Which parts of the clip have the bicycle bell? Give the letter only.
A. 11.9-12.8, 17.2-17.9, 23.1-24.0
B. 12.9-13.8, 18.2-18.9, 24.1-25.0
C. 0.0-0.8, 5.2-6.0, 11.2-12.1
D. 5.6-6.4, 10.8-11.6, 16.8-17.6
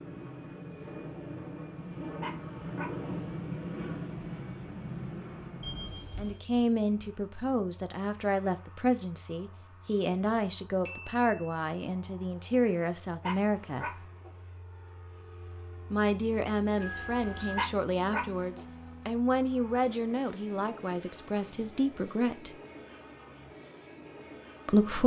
D.